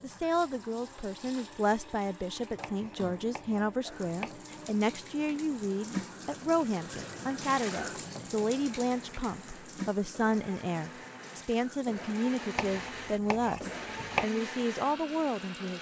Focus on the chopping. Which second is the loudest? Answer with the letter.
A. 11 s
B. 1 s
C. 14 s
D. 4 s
C.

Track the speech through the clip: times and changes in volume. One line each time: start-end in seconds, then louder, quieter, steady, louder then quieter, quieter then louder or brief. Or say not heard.
0.0-15.7 steady.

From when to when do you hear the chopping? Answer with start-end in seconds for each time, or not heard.
2.6-4.3, 12.6-14.2.